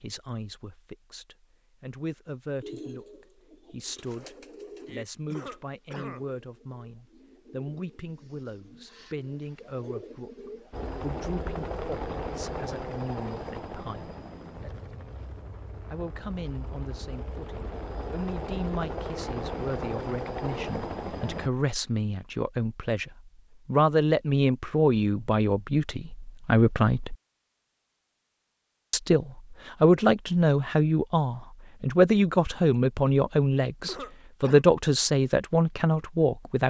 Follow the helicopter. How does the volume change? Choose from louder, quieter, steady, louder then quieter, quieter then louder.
quieter then louder.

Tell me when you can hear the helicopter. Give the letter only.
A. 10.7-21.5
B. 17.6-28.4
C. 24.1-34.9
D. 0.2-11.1
A.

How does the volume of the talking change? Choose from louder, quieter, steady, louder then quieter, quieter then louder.
louder.